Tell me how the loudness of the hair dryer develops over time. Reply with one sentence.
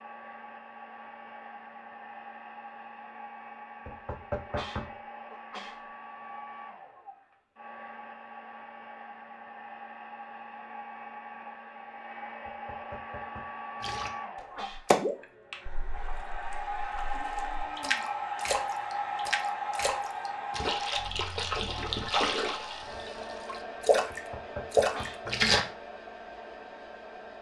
The volume of the hair dryer goes up, then down.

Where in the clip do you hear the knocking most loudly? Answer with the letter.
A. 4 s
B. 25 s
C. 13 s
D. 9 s
A.